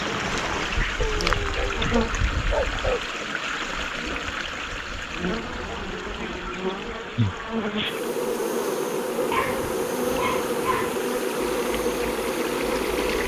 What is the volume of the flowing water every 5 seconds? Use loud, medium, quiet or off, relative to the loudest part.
loud, medium, medium.